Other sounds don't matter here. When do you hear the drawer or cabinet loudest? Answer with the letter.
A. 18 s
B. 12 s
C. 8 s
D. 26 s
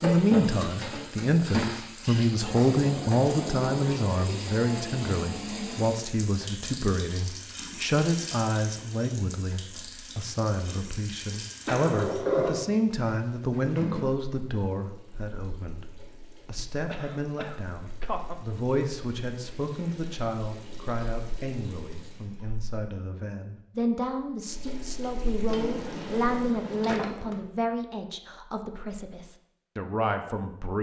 B.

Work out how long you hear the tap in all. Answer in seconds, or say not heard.
25 s.